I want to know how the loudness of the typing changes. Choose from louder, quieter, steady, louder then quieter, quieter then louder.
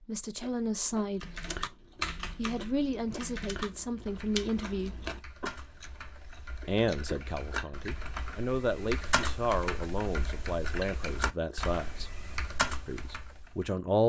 quieter then louder.